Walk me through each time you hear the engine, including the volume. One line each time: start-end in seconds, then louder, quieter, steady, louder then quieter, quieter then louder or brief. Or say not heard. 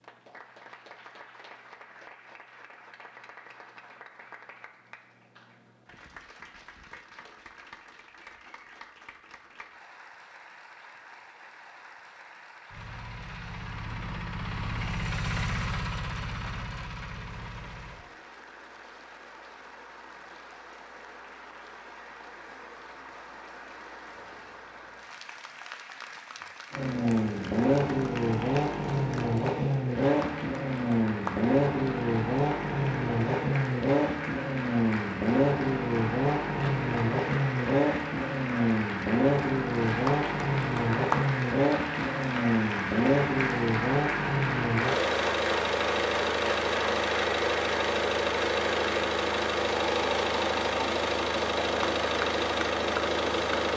12.7-18.0 louder then quieter
26.7-53.7 steady.